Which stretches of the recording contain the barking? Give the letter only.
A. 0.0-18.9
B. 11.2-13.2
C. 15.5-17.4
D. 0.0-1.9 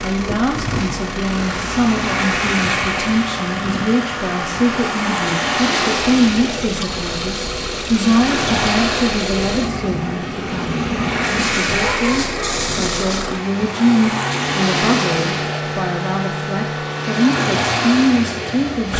B.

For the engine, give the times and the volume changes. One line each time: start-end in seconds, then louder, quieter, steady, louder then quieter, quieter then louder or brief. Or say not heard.
0.0-18.9 steady.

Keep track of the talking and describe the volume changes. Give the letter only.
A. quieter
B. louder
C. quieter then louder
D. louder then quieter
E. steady
E.